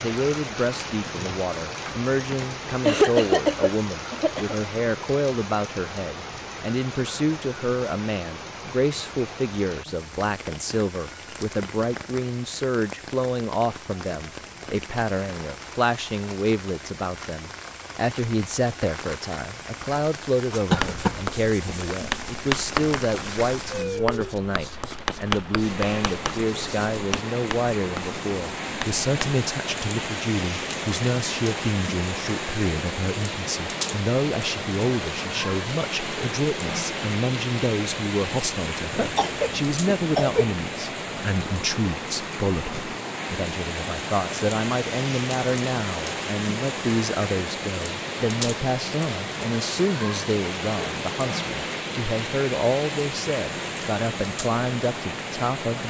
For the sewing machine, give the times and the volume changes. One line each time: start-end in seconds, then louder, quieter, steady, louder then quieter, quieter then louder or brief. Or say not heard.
not heard.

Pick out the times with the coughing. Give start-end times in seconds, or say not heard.
2.3-4.5, 20.7-21.2, 39.0-40.5.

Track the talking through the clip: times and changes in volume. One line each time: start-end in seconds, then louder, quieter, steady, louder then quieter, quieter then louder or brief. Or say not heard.
0.0-55.8 steady.